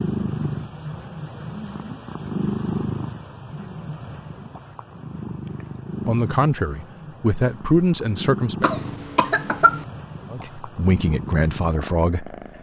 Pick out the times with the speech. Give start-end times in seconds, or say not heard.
6.0-8.7, 10.3-12.3.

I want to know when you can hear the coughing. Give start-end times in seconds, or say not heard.
8.6-9.8.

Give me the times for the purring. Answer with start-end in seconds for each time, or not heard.
0.0-12.5.